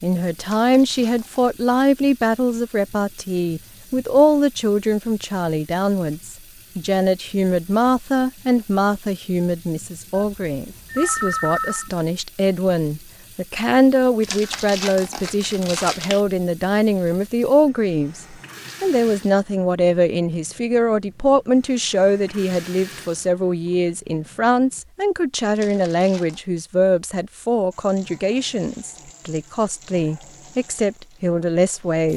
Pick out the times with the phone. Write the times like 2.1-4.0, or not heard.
10.2-11.9.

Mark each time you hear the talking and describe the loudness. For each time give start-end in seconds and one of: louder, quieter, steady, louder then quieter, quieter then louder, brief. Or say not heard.
0.0-32.1 steady.